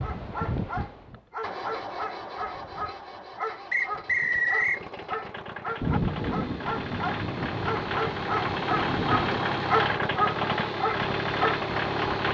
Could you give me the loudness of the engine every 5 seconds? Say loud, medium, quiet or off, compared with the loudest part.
medium, loud, loud.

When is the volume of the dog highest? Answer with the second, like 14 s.
10 s.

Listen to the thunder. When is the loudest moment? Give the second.
6 s.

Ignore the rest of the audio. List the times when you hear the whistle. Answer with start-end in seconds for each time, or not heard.
3.7-4.8.